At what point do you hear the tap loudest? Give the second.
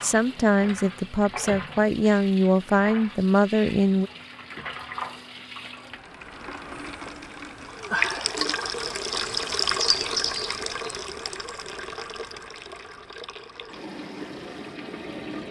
10 s.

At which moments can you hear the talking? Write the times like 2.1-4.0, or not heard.
0.0-4.1.